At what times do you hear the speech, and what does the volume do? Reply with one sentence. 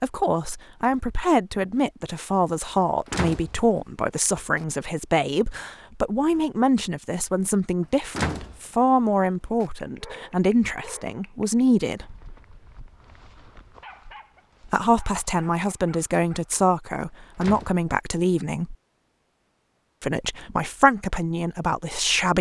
The speech can be heard from 0.0 to 12.2 s, at a steady volume; from 14.7 to 18.8 s, at a steady volume; and briefly from 20.0 to 22.3 s.